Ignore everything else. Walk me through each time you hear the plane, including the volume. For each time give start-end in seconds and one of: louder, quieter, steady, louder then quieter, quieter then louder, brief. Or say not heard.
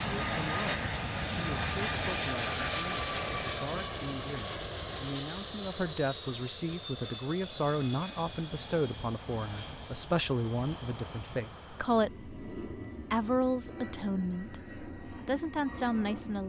0.0-16.4 quieter.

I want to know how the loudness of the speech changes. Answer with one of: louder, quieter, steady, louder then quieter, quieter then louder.
louder.